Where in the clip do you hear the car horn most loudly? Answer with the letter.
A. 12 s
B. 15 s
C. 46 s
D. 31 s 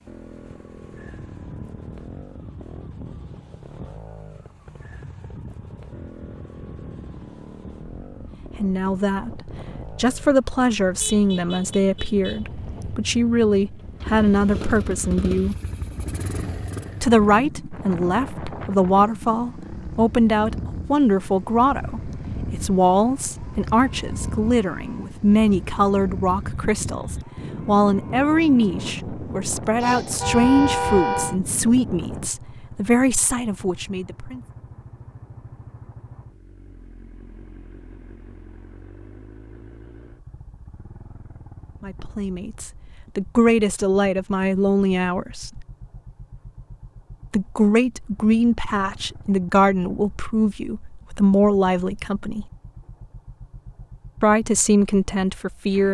D.